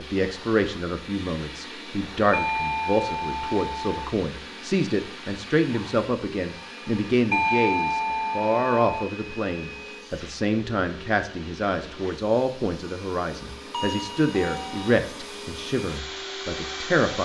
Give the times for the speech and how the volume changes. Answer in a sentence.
You can hear the speech from 0.0 to 17.2 s, at a steady volume.